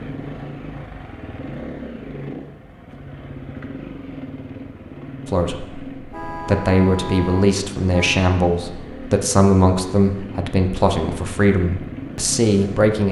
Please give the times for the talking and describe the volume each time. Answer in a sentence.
The talking can be heard from 5.2 to 13.0 s, at a steady volume.